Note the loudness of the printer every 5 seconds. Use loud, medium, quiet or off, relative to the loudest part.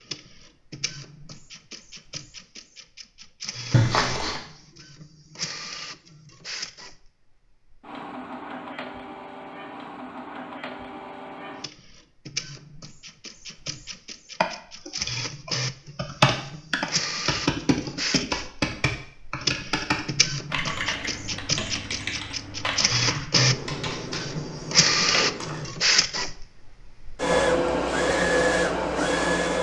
quiet, quiet, quiet, medium, loud, loud.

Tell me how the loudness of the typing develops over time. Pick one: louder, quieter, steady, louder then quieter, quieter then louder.
quieter.